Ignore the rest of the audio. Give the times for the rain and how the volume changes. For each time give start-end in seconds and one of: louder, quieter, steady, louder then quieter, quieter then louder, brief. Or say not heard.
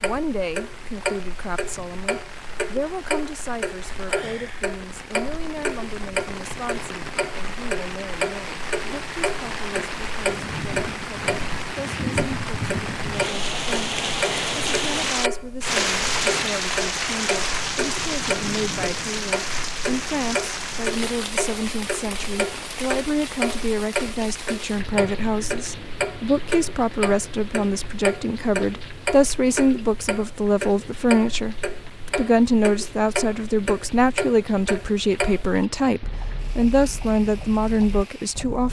0.0-38.6 louder then quieter.